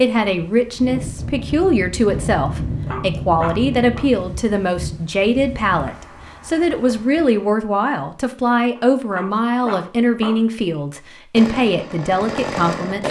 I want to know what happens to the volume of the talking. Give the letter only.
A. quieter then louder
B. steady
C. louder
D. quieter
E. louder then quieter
B.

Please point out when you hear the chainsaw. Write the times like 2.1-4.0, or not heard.
11.3-13.0.